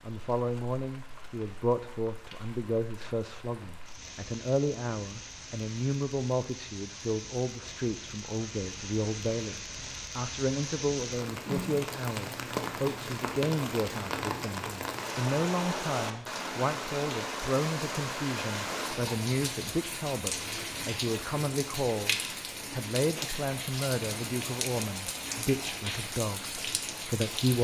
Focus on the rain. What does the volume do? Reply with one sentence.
The volume of the rain goes up.